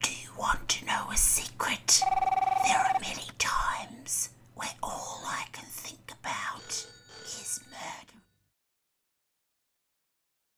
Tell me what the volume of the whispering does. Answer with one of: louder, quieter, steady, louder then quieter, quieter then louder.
quieter.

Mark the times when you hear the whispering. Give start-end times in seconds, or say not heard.
0.0-8.2.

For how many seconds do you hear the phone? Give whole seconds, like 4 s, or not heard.
3 s.